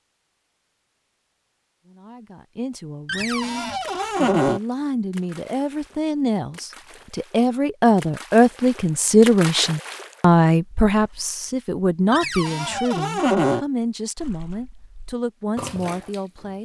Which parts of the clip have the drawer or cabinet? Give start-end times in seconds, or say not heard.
3.0-4.6, 12.1-13.7.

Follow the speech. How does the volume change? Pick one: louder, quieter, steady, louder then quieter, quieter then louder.
louder then quieter.